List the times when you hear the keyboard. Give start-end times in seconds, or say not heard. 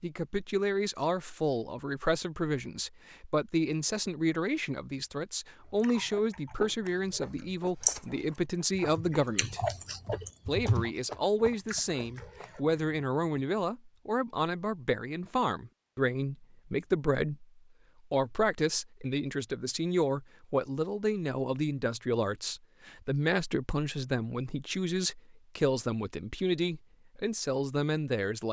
7.8-10.9.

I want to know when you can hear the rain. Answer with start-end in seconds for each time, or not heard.
not heard.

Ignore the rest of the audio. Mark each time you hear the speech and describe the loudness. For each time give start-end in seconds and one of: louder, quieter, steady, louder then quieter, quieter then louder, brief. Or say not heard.
0.0-9.6 steady
10.4-28.4 steady.